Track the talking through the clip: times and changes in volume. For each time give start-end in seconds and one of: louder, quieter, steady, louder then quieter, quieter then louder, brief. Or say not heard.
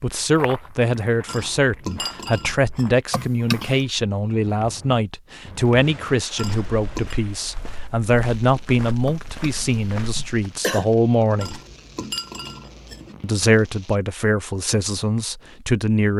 0.0-11.6 steady
13.2-16.1 brief.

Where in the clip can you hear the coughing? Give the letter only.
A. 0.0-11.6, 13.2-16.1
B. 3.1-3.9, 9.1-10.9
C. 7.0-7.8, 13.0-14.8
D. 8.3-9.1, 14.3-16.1
B.